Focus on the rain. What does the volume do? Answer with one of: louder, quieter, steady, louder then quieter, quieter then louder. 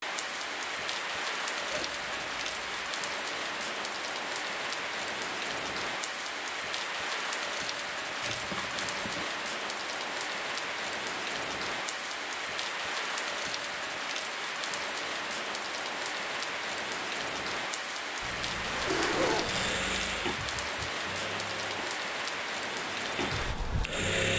steady.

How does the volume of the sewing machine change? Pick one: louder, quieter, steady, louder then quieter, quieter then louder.
quieter then louder.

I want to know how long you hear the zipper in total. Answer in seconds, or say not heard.
4 s.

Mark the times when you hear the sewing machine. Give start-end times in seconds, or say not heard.
18.9-24.3.